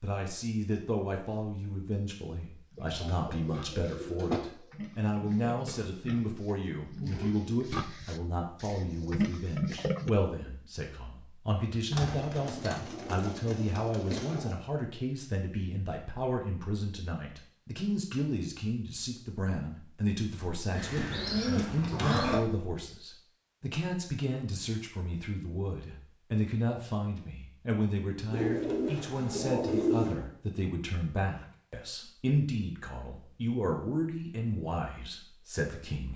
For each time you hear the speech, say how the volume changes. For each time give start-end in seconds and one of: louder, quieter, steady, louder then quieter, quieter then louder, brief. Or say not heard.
0.0-36.1 steady.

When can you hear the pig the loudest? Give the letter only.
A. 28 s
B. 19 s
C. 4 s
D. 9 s
D.